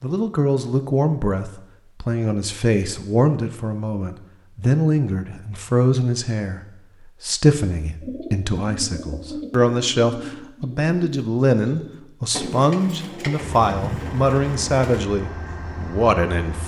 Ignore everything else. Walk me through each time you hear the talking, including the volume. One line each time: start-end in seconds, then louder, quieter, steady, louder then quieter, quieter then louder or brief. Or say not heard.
0.0-16.6 steady.